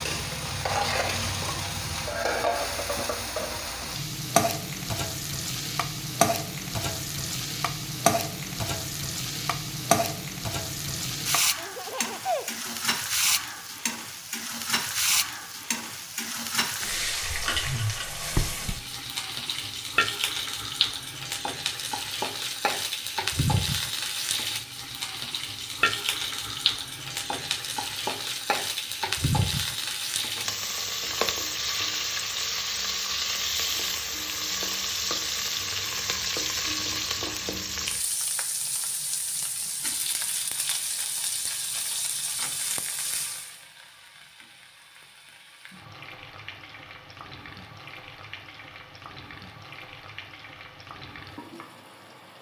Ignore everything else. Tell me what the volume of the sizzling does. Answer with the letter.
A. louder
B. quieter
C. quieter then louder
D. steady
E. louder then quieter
B.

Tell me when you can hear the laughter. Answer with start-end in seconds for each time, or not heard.
11.6-12.8.